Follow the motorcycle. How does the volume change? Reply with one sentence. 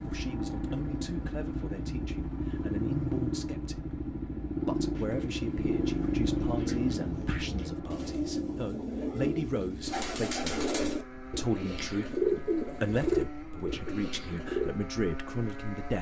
The volume of the motorcycle goes down.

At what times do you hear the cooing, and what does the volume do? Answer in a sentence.
The cooing can be heard from 4.9 to 14.7 s, getting louder.